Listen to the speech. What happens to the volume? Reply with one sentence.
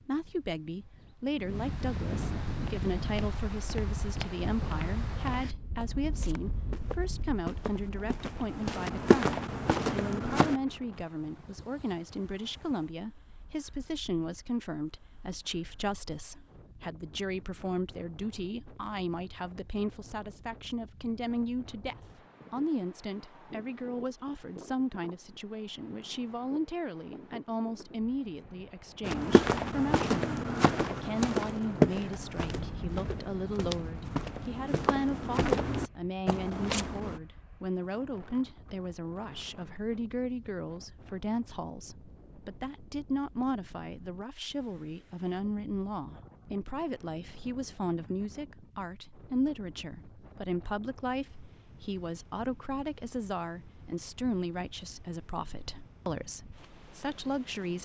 The loudness of the speech stays about the same.